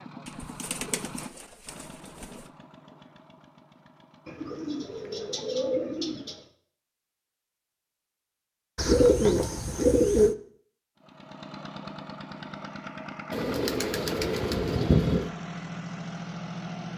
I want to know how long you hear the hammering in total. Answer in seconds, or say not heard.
not heard.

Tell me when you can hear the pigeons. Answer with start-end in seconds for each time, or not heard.
0.2-2.4, 4.2-6.5, 8.8-10.3, 13.3-15.3.